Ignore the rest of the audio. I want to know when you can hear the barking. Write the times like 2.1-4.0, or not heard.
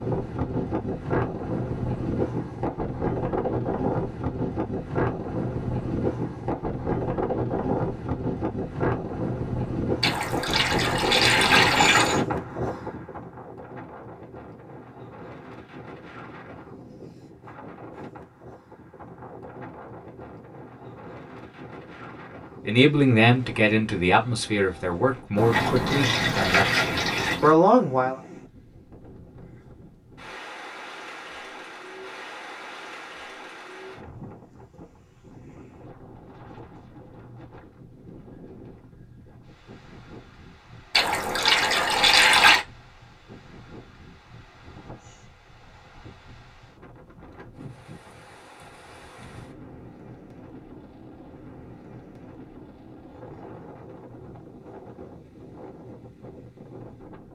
not heard.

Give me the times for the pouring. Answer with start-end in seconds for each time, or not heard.
10.0-12.2, 25.4-27.6, 40.9-42.6.